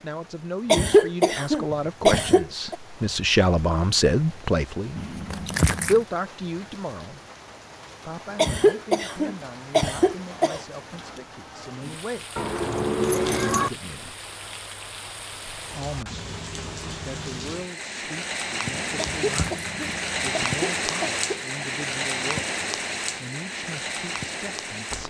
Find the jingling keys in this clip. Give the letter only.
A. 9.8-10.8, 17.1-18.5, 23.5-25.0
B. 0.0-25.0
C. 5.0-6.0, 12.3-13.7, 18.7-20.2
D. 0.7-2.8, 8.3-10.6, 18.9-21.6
C.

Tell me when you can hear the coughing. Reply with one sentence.
The coughing can be heard from 0.7 to 2.8 s, from 8.3 to 10.6 s and from 18.9 to 21.6 s.